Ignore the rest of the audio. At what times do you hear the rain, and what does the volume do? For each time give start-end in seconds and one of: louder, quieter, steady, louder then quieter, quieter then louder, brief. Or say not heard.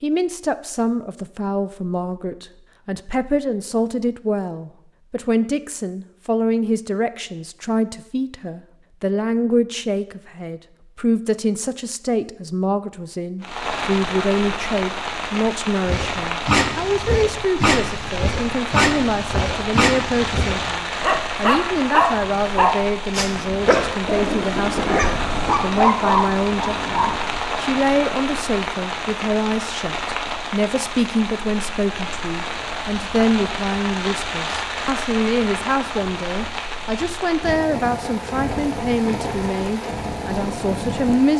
13.4-41.3 steady.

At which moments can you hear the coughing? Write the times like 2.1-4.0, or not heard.
not heard.